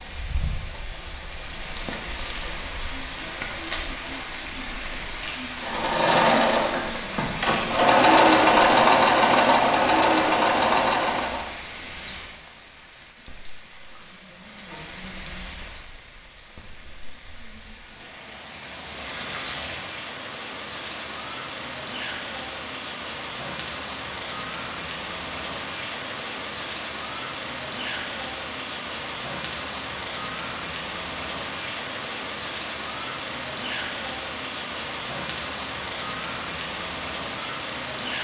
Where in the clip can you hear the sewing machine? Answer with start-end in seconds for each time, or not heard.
5.5-11.5.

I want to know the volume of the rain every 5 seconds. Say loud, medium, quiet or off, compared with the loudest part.
loud, loud, medium, medium, loud, loud, loud, loud.